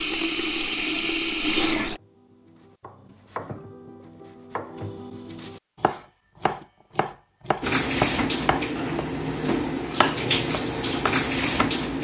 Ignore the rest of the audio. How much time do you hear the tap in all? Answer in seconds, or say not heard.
6 s.